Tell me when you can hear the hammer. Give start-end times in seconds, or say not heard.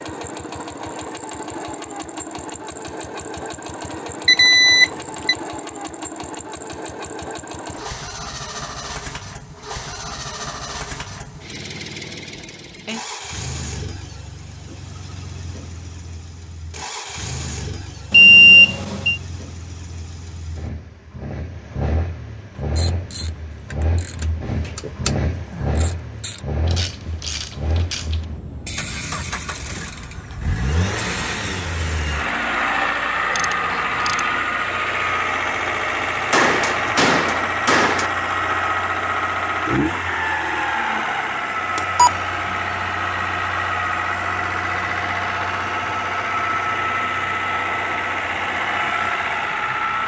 36.3-38.1.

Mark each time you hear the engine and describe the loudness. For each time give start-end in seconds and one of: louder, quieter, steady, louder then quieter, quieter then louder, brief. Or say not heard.
0.0-50.0 louder.